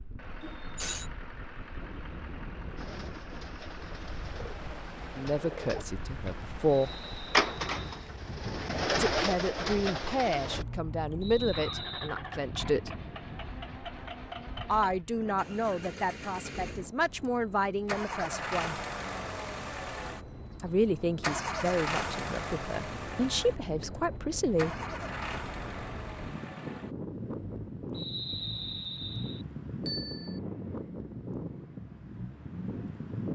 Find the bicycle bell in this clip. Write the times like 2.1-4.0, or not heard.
0.4-1.1, 29.9-30.4.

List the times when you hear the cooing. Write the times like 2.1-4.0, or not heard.
2.8-10.7.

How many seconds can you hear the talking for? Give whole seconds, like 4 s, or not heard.
14 s.